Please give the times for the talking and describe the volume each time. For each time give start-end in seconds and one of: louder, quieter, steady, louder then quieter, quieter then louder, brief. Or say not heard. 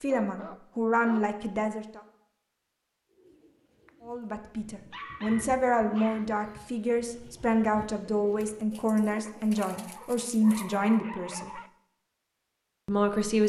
0.0-2.0 brief
4.0-11.6 steady
12.8-13.4 brief.